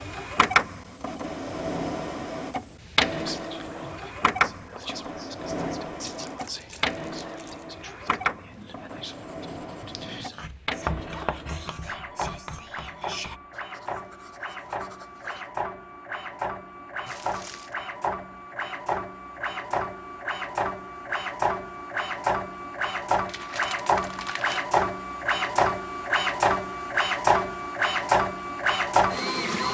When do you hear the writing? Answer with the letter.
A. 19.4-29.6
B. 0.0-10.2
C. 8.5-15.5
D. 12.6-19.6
C.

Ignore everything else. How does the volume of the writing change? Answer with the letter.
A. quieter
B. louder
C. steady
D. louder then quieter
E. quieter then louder
D.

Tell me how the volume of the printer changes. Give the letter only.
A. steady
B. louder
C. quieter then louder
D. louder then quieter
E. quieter
C.